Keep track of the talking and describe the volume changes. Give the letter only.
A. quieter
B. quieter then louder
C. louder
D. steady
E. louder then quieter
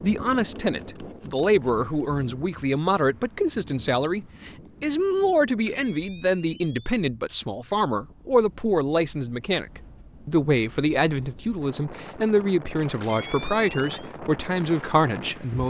D.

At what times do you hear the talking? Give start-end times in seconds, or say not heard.
0.0-15.6.